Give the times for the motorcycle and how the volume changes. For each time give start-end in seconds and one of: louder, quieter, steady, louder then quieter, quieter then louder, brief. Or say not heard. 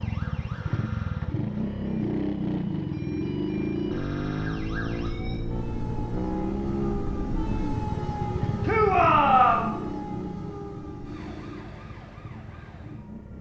0.0-13.3 quieter.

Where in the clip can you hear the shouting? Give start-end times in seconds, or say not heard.
8.7-9.7.